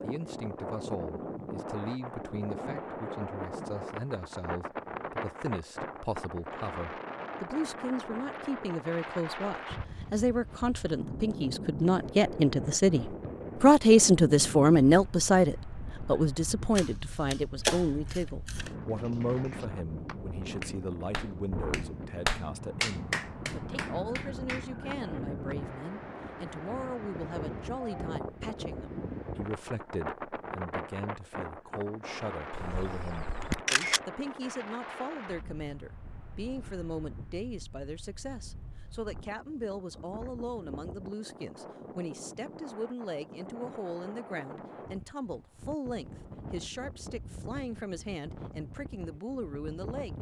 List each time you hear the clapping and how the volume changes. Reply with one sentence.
You can hear the clapping from 18.9 to 25.6 s, getting louder then quieter.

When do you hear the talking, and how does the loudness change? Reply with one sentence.
The talking can be heard from 0.0 to 50.1 s, getting louder then quieter.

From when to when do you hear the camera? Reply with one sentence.
You can hear the camera from 16.8 to 18.7 s and from 32.5 to 34.0 s.